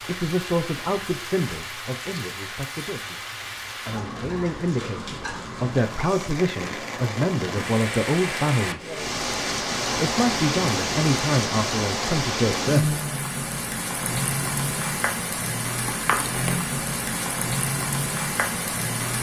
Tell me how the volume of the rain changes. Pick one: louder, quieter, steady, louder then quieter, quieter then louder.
louder.